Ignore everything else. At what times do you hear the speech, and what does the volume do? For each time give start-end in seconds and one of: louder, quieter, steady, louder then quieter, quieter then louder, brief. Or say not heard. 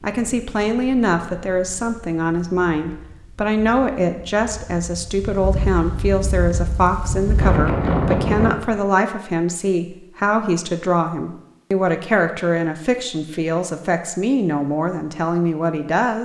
0.0-16.1 steady.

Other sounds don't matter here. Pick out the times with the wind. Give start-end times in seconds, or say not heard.
0.0-8.6.